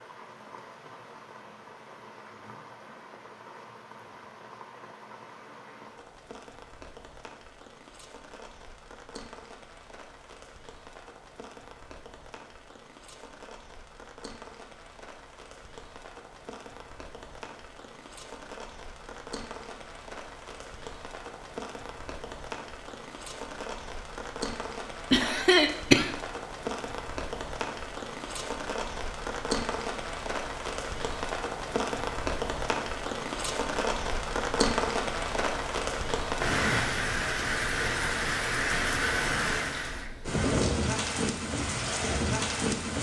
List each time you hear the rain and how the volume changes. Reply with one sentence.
The rain can be heard from 0.0 to 42.9 s, getting louder.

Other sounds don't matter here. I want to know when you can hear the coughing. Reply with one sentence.
The coughing can be heard from 25.1 to 26.1 s.